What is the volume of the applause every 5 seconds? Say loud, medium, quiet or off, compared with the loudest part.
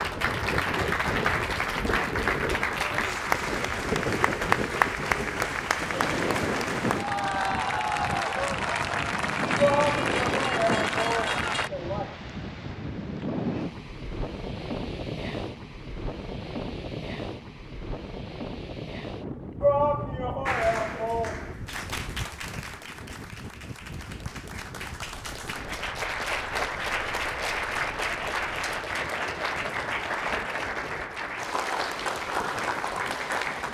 loud, loud, loud, off, medium, loud, loud.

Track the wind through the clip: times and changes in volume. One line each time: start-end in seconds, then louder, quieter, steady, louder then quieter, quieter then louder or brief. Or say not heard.
0.0-33.6 quieter.